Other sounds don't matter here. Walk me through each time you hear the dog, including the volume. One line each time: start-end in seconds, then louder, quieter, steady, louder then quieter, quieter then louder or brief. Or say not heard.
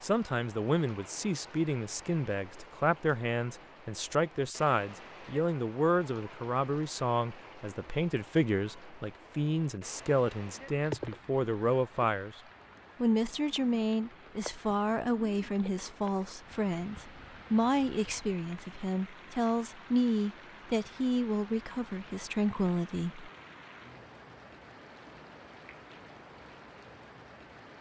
not heard.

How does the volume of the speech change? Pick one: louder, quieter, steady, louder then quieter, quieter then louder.
steady.